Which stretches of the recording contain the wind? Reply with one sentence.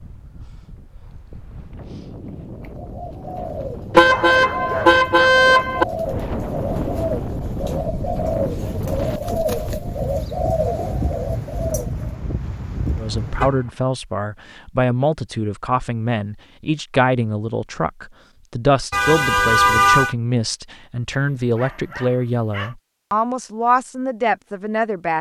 The wind can be heard from 0.0 to 13.5 s.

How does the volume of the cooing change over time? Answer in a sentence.
The volume of the cooing goes up.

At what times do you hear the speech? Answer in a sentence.
The speech can be heard from 12.9 to 25.1 s.